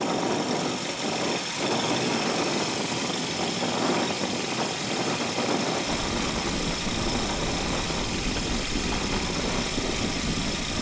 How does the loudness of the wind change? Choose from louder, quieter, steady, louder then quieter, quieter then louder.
steady.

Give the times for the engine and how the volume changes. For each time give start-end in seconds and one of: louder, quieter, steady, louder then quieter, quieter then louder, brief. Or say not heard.
0.0-10.7 steady.